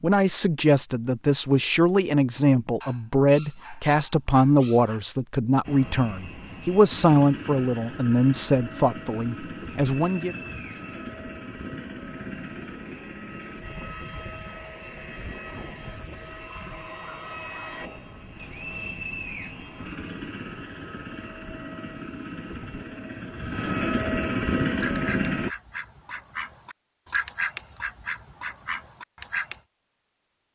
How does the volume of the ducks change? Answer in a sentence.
The volume of the ducks goes up, then down.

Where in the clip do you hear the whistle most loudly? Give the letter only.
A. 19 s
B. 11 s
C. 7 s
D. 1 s
A.